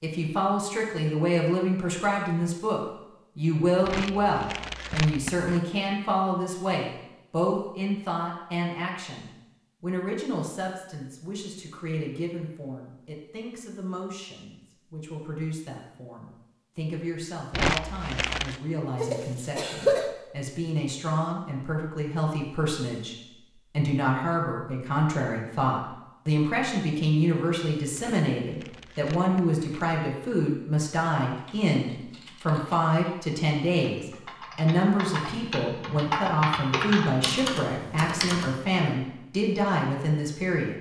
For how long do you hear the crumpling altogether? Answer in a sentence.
The crumpling can be heard for 5 seconds in total.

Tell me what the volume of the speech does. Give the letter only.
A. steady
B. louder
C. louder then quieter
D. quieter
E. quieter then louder
E.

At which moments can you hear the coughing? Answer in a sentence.
The coughing can be heard from 19.0 to 20.1 s.